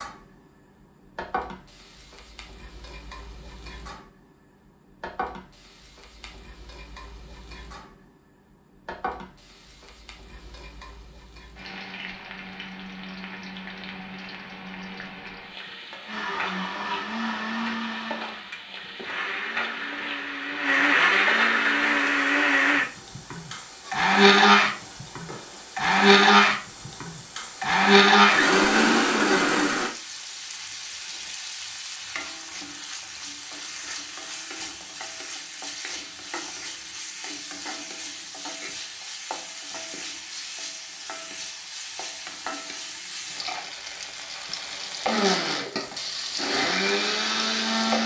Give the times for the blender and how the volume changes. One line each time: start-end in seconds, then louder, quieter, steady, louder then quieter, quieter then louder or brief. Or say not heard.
16.1-29.9 louder
45.0-48.0 brief.